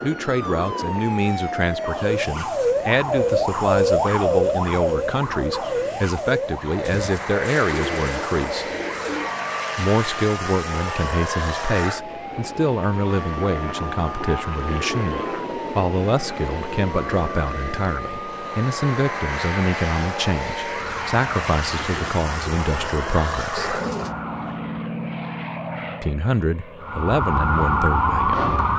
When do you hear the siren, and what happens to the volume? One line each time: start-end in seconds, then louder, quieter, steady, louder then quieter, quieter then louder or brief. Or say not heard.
0.0-24.9 quieter
26.8-28.7 brief.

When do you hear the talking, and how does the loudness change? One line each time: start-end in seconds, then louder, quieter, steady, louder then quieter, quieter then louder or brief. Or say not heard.
0.0-8.8 steady
9.8-23.8 steady
26.0-28.6 brief.